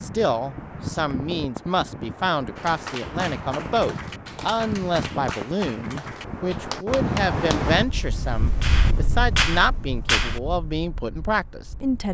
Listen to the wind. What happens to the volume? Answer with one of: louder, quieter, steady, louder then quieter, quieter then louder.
louder then quieter.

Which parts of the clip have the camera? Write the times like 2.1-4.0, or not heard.
not heard.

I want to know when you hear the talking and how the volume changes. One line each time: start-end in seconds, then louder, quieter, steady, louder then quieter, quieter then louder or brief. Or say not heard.
0.0-12.0 steady.